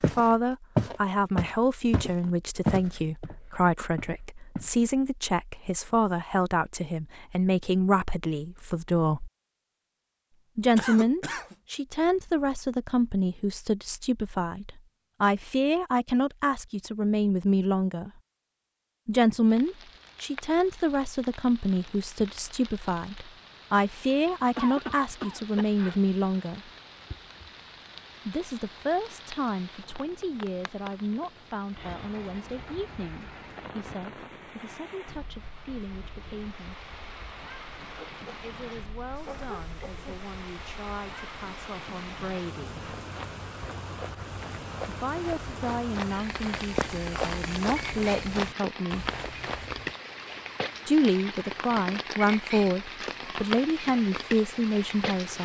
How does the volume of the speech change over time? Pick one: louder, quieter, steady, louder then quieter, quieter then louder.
quieter then louder.